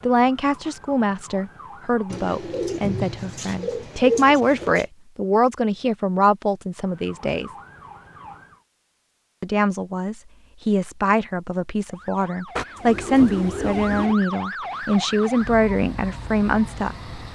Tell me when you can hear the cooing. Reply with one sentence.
You can hear the cooing from 2.1 to 4.8 s and from 12.6 to 14.2 s.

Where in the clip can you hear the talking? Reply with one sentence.
The talking can be heard from 0.0 to 7.5 s and from 9.4 to 16.9 s.